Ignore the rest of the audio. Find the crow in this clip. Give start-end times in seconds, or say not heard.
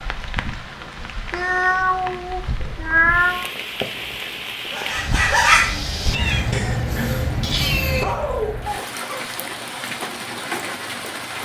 not heard.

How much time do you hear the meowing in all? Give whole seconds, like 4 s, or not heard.
4 s.